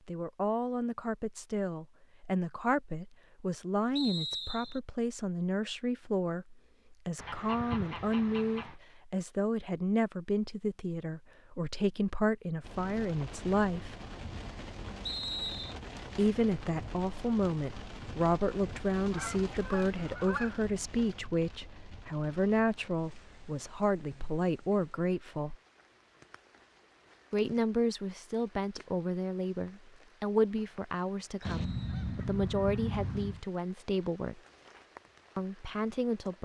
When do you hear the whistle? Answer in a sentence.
The whistle can be heard from 4.0 to 4.8 s, from 15.1 to 15.8 s and from 31.5 to 32.2 s.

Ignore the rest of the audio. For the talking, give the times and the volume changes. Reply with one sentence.
The talking can be heard from 0.1 to 13.9 s, at a steady volume; from 16.1 to 25.6 s, at a steady volume; from 27.3 to 34.4 s, at a steady volume; and briefly from 35.4 to 36.4 s.